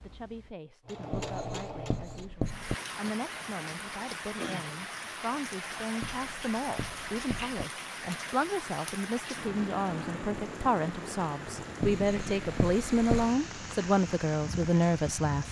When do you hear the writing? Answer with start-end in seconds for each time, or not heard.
1.1-2.8, 6.0-7.7, 11.8-13.3.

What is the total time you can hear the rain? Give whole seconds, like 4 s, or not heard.
13 s.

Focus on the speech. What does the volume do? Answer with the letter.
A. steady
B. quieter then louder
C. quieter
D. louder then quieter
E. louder
E.